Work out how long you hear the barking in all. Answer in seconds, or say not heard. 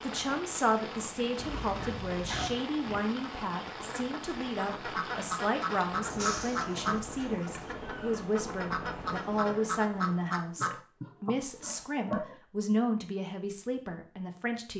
not heard.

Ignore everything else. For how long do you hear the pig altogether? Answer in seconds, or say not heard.
6 s.